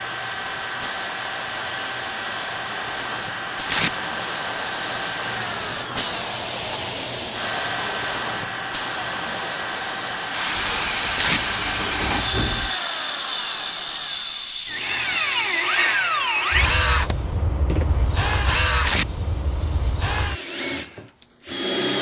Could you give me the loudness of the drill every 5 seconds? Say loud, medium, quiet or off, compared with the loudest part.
medium, medium, medium, loud, loud.